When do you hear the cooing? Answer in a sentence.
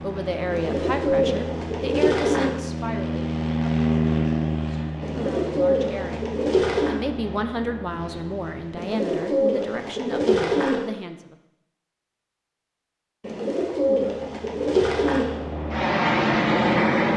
The cooing can be heard from 0.5 to 2.5 s, from 5.0 to 7.0 s, from 8.8 to 10.8 s and from 13.2 to 15.2 s.